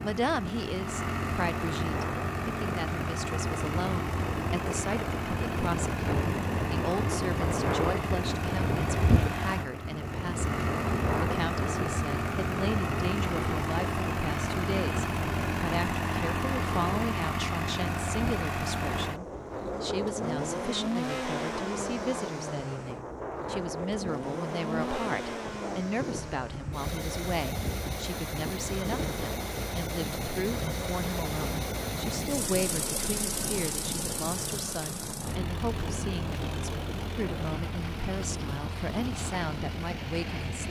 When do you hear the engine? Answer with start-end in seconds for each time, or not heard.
0.0-40.6.